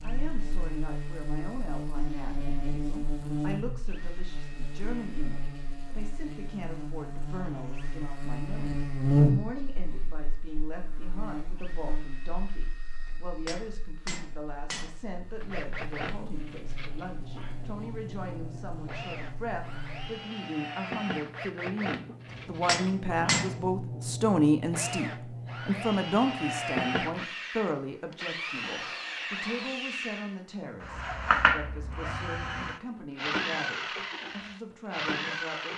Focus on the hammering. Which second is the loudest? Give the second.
23 s.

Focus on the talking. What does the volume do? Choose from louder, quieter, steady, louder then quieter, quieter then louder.
louder then quieter.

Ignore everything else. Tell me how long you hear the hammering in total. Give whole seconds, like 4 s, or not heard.
3 s.